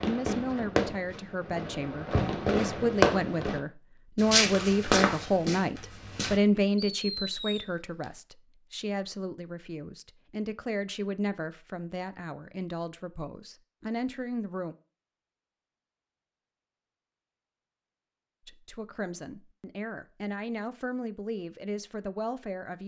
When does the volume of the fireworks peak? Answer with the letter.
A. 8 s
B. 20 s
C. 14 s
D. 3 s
D.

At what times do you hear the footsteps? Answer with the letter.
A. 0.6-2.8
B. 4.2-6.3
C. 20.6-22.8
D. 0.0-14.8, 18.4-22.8
B.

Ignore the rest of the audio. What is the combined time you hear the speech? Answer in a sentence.
You can hear the speech for 19 seconds altogether.